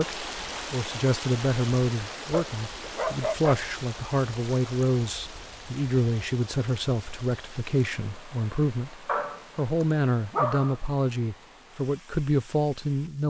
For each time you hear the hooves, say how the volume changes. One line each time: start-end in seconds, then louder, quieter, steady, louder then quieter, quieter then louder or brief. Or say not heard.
not heard.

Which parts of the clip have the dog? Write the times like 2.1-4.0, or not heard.
2.3-3.7, 9.1-10.8.